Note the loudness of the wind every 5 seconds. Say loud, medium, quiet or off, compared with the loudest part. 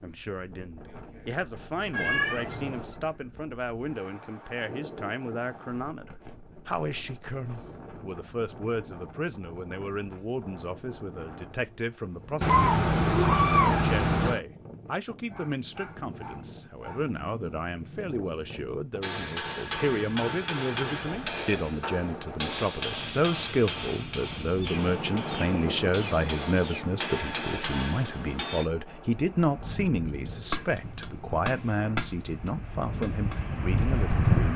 quiet, quiet, quiet, quiet, medium, medium, loud.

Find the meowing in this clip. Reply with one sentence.
The meowing can be heard from 1.9 to 3.0 s, from 12.4 to 14.4 s and from 24.6 to 26.9 s.